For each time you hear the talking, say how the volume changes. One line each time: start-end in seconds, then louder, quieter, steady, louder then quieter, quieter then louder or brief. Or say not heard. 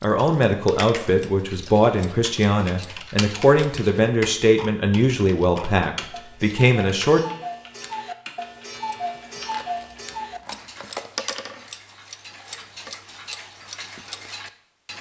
0.0-7.2 steady.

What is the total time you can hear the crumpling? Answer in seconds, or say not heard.
2 s.